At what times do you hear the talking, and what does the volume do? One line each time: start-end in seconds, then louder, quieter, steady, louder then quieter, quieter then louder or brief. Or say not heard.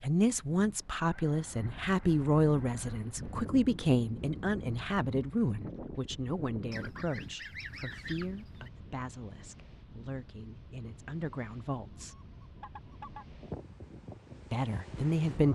0.0-12.2 quieter
14.5-15.5 brief.